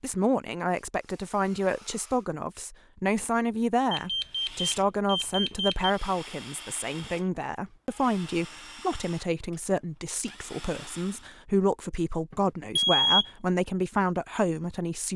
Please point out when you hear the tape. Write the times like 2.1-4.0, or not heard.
not heard.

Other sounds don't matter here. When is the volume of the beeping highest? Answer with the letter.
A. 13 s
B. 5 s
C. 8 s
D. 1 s
A.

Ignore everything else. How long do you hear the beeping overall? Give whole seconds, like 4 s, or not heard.
3 s.